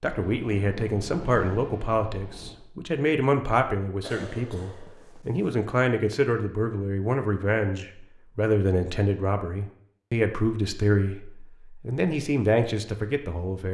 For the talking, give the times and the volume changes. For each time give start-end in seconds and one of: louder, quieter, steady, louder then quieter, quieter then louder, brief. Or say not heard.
0.0-13.6 steady.